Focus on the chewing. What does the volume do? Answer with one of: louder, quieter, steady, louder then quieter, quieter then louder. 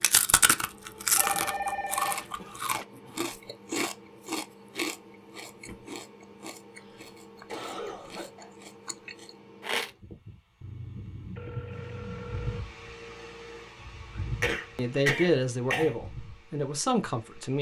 quieter.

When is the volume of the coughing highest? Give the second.
15 s.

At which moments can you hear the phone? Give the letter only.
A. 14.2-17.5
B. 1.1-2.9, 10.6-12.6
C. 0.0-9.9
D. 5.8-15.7
B.